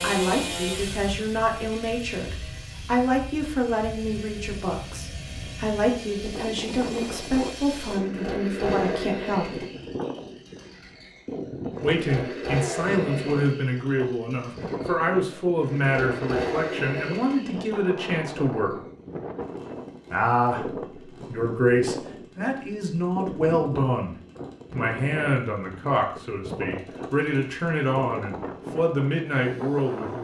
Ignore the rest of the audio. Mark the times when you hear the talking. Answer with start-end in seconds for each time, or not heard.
0.0-9.6, 11.8-18.7, 20.1-30.1.